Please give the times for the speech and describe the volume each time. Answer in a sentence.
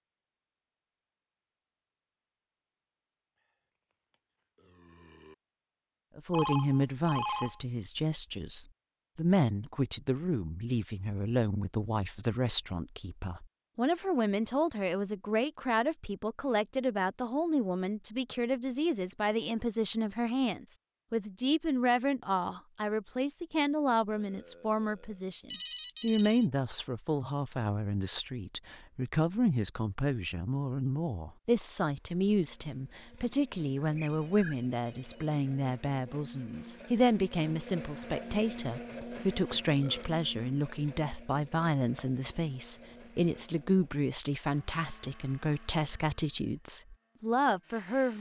The speech can be heard from 6.2 to 48.1 s, at a steady volume.